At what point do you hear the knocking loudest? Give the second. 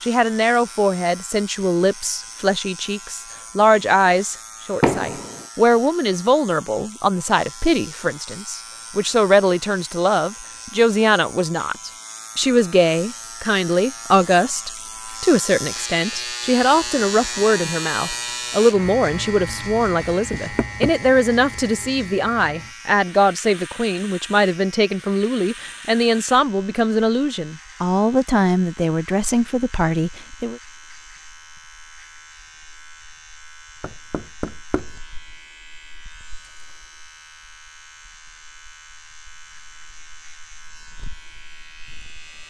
5 s.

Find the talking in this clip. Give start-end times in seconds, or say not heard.
0.0-30.6.